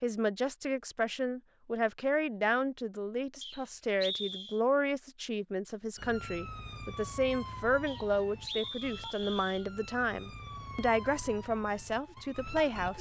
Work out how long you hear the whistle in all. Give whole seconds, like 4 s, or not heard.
3 s.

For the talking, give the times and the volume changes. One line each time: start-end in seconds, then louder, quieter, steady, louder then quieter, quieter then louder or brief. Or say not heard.
0.0-12.9 steady.